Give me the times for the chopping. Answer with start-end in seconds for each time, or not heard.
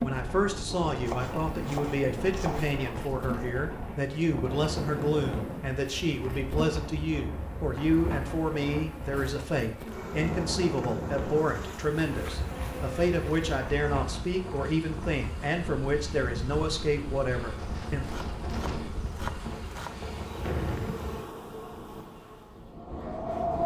1.1-2.8, 18.0-20.1.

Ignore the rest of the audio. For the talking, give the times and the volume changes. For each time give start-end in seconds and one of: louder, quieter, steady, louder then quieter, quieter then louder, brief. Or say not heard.
0.0-18.1 steady.